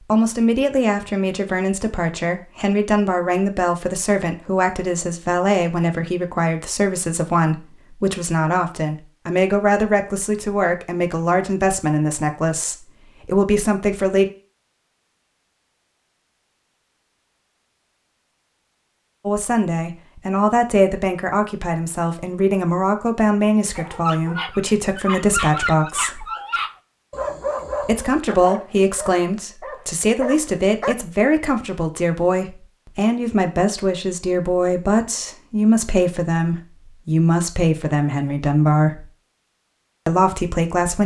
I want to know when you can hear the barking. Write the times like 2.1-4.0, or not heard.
23.8-30.9.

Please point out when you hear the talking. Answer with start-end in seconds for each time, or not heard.
0.0-14.3, 19.2-26.2, 27.8-39.0, 40.0-41.0.